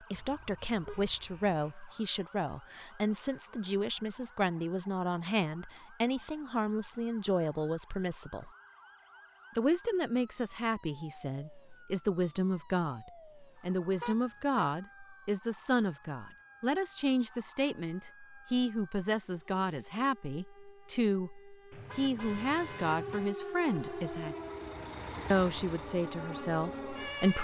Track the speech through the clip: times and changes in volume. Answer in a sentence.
You can hear the speech from 0.1 to 8.5 s, at a steady volume; from 9.6 to 24.4 s, at a steady volume; and briefly from 25.3 to 27.3 s.